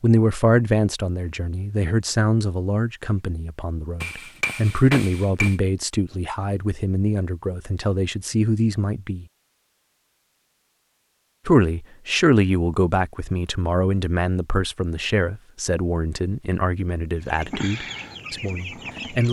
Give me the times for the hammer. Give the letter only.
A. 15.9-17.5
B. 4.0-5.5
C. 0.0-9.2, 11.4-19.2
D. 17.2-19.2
B.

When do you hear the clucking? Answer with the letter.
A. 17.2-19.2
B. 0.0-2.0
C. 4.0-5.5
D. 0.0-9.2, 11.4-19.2
A.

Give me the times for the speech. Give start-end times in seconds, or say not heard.
0.0-9.2, 11.4-19.2.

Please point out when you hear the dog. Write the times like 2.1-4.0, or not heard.
not heard.